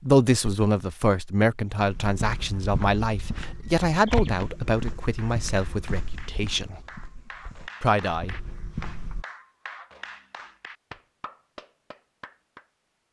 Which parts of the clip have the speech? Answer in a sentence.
The speech can be heard from 0.0 to 6.8 s and from 7.8 to 8.3 s.